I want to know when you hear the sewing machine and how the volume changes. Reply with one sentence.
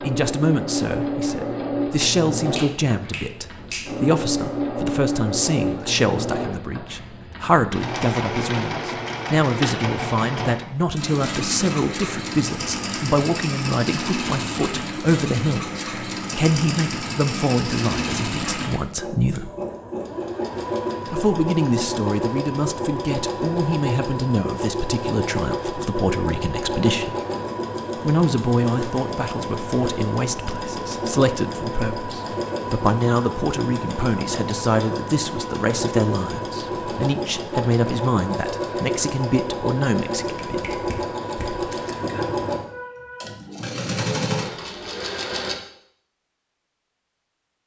You can hear the sewing machine from 0.0 to 45.5 s, at a steady volume.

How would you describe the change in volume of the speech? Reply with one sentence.
The loudness of the speech stays about the same.